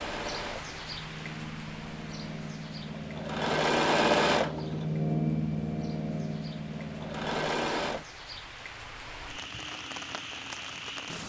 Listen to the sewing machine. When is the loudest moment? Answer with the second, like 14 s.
4 s.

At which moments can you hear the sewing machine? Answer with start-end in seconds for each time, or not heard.
0.0-8.1.